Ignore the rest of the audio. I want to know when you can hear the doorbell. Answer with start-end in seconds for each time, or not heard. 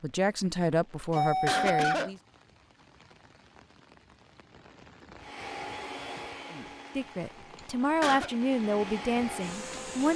1.1-1.9.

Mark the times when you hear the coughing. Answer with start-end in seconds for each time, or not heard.
1.0-2.1, 7.5-8.3.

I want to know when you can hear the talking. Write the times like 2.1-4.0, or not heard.
0.0-2.1, 6.5-10.1.